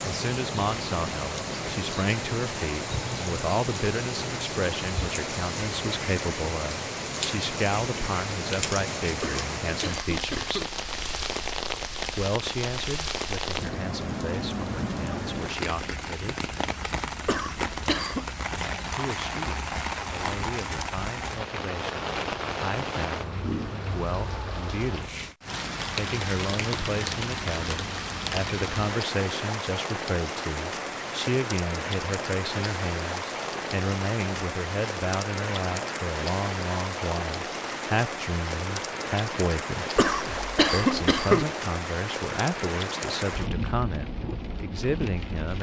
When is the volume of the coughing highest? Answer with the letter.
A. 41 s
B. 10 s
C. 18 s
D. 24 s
A.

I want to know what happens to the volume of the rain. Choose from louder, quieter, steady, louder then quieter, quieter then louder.
steady.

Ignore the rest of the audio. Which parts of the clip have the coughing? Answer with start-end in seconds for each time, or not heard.
9.2-10.7, 17.2-18.2, 40.0-41.5.